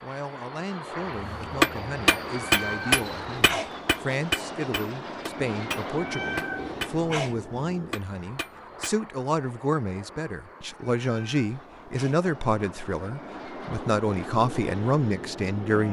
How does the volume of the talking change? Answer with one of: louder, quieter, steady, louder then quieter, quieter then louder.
louder.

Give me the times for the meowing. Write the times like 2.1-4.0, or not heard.
2.3-3.8, 6.0-7.4, 11.1-12.2.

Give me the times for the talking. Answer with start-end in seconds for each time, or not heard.
0.0-15.8.